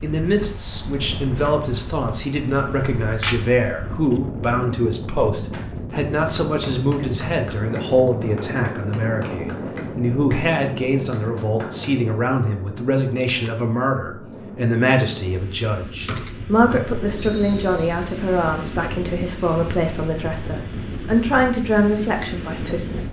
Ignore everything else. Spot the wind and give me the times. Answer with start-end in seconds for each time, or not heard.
0.0-23.0.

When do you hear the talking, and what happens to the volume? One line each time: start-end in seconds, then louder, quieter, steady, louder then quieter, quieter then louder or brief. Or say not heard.
0.0-23.0 steady.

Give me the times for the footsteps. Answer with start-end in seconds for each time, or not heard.
not heard.